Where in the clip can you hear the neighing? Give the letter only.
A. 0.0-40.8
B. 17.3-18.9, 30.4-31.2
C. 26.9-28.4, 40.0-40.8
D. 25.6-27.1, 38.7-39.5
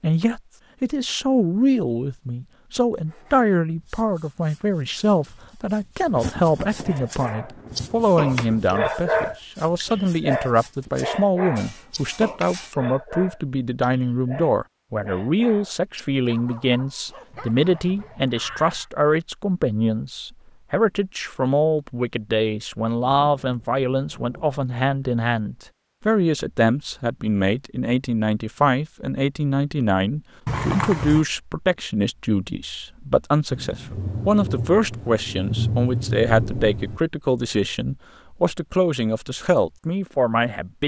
B.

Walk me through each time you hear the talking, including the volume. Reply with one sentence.
You can hear the talking from 0.0 to 40.8 s, at a steady volume.